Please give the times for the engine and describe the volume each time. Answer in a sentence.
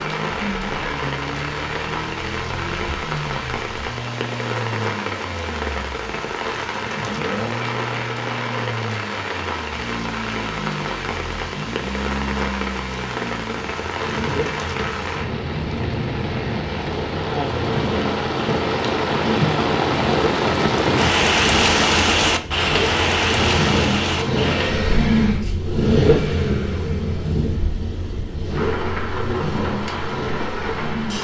You can hear the engine from 0.0 to 31.1 s, getting louder.